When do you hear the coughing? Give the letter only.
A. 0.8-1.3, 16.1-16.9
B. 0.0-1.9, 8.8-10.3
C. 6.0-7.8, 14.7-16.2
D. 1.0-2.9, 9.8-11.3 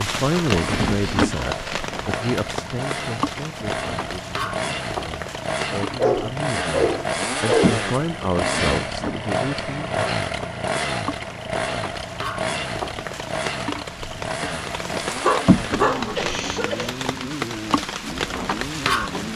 A.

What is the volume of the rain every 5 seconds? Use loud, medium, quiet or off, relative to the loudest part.
loud, medium, medium, loud.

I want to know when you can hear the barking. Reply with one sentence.
You can hear the barking from 6.0 to 7.8 s and from 14.7 to 16.2 s.